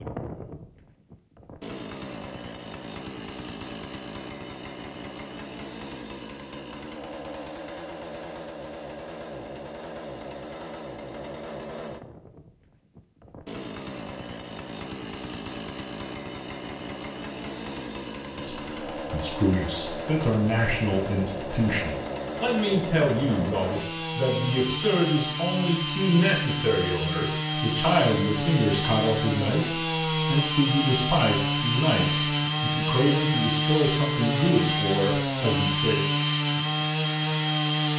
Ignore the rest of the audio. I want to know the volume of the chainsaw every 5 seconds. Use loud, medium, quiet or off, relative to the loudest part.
quiet, quiet, quiet, medium, medium, loud, loud, loud.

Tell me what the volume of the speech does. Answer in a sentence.
The volume of the speech stays about the same.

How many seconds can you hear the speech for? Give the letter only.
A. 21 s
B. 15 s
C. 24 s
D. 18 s
D.